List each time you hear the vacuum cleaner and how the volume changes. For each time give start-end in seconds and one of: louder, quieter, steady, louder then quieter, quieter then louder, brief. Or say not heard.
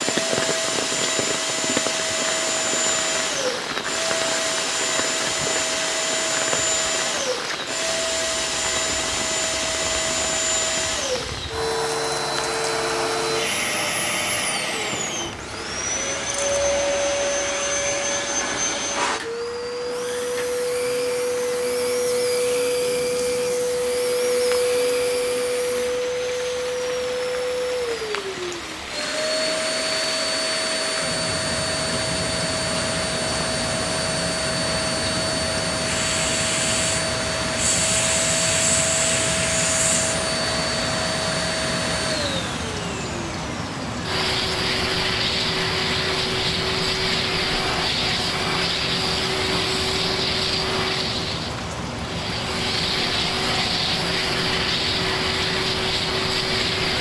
0.0-56.9 steady.